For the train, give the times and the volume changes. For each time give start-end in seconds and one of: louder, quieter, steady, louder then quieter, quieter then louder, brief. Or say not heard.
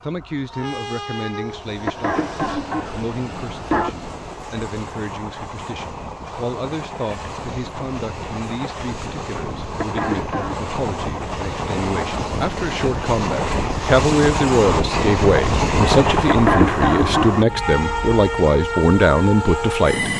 0.0-20.1 louder.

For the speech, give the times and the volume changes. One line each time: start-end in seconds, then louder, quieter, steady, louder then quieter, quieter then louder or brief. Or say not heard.
0.0-20.1 louder.